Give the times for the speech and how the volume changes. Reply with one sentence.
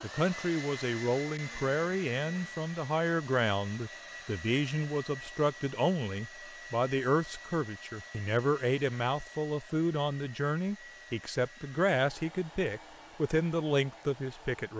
You can hear the speech from 0.0 to 14.7 s, at a steady volume.